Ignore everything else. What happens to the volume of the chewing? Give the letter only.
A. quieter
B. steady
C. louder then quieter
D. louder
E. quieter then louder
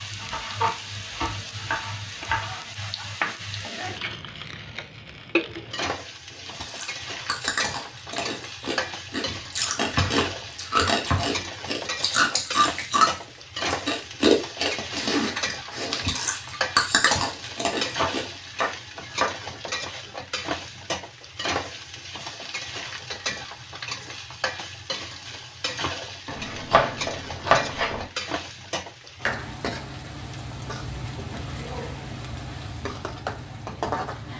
D.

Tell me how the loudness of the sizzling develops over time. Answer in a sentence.
The volume of the sizzling stays about the same.